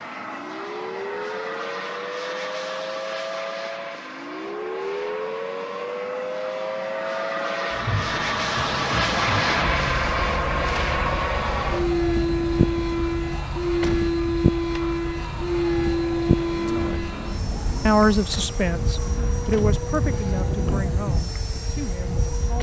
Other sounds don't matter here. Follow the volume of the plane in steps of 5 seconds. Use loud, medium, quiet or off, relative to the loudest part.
medium, loud, loud, loud, medium.